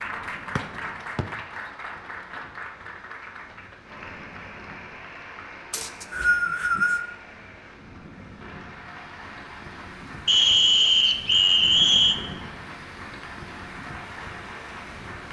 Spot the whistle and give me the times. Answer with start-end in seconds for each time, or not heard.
0.6-1.2, 5.7-7.0, 10.2-12.2.